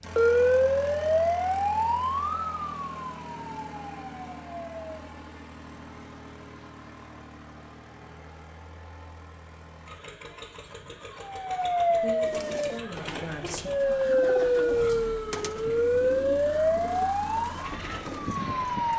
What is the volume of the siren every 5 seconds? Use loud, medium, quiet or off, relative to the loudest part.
loud, off, loud, loud.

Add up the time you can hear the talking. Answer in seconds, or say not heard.
2 s.